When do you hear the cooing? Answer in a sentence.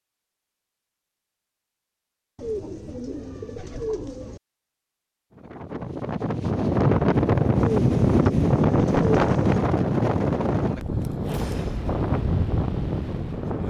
You can hear the cooing from 2.4 to 4.4 s and from 7.6 to 9.6 s.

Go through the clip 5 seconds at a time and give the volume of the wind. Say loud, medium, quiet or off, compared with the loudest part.
off, loud, medium.